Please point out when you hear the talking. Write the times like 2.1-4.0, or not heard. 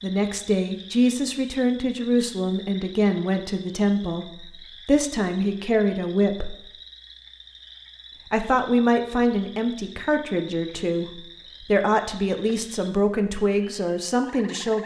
0.0-6.5, 8.3-14.8.